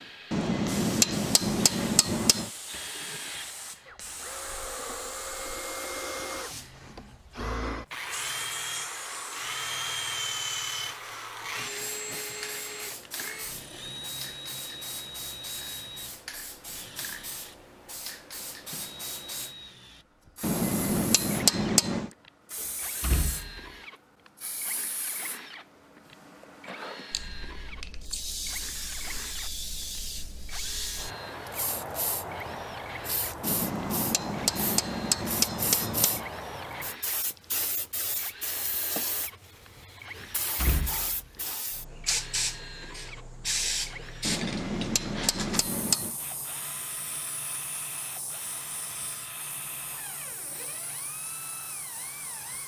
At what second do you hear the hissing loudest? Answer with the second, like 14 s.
44 s.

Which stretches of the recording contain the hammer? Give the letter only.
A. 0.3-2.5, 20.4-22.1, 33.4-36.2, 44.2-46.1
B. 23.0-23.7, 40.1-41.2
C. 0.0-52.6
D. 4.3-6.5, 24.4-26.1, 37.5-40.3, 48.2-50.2
A.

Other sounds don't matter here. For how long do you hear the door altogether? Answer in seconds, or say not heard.
2 s.